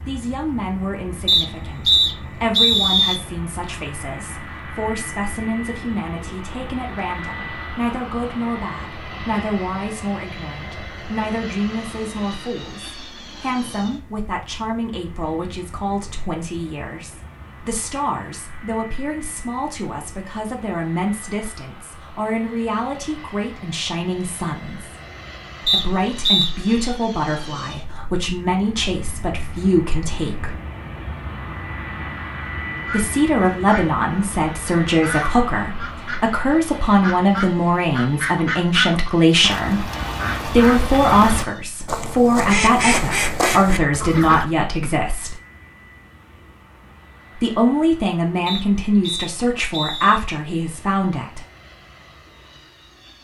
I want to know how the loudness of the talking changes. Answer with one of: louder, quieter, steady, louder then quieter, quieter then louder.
louder.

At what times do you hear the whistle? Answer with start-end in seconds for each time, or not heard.
1.2-3.2, 25.6-26.5, 48.5-50.2.